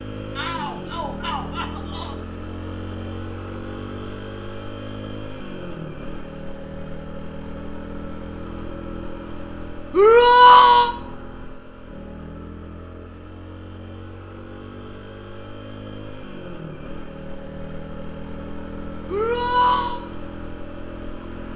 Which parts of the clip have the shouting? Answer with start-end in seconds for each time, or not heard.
0.3-2.1, 9.9-10.9, 19.1-20.0.